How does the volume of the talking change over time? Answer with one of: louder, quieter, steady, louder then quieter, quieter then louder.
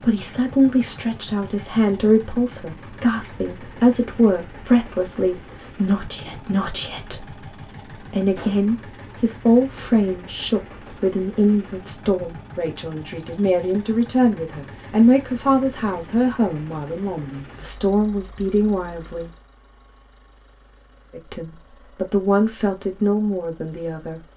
steady.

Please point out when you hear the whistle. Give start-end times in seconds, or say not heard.
not heard.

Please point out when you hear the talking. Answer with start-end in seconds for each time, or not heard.
0.0-19.3, 21.1-24.2.